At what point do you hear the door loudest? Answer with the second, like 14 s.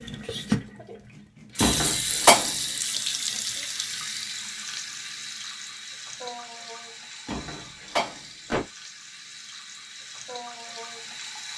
2 s.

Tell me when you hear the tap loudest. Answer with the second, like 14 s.
2 s.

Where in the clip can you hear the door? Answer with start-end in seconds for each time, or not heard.
1.6-2.5, 7.2-8.7.